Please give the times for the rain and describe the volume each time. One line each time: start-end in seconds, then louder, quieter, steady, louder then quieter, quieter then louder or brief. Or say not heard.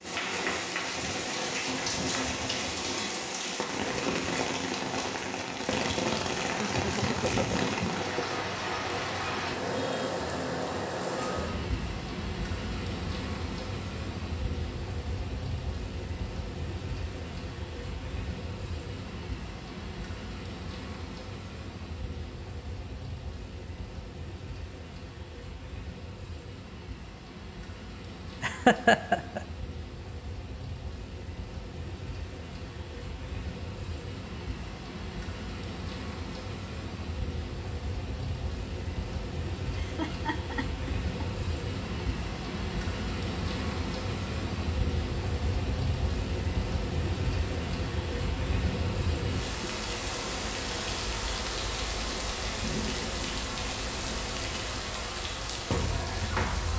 0.0-56.7 quieter then louder.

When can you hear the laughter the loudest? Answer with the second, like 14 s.
29 s.